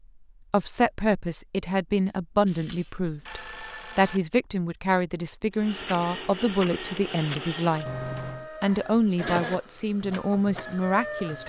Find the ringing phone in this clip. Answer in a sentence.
The ringing phone can be heard from 2.5 to 4.2 s and from 7.8 to 8.5 s.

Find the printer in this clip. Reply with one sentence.
You can hear the printer from 5.5 to 11.4 s.